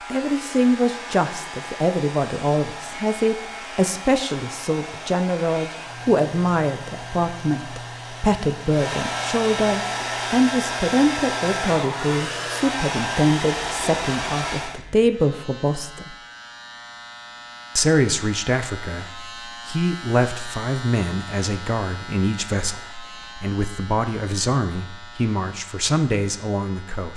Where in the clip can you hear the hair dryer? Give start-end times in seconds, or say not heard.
0.0-14.8.